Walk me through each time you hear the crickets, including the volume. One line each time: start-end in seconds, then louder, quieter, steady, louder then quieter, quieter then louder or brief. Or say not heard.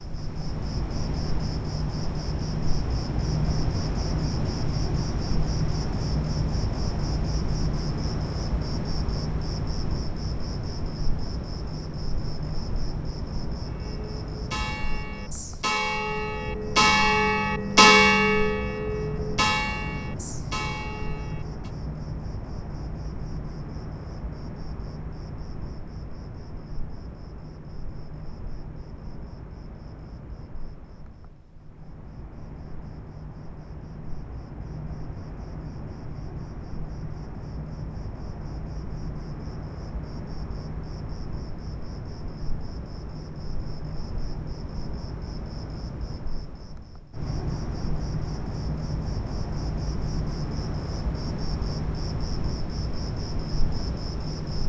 0.0-54.6 quieter then louder.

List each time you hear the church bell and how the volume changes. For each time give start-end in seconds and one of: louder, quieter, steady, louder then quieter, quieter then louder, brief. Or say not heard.
13.7-21.7 louder then quieter.